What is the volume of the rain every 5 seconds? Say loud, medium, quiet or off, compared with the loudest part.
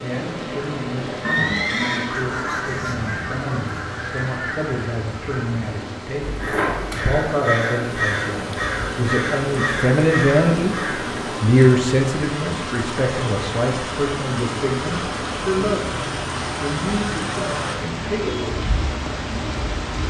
medium, medium, loud, loud.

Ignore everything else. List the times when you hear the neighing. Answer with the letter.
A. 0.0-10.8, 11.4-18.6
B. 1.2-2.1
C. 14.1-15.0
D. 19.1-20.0
B.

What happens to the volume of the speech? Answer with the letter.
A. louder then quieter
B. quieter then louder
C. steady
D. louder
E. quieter
A.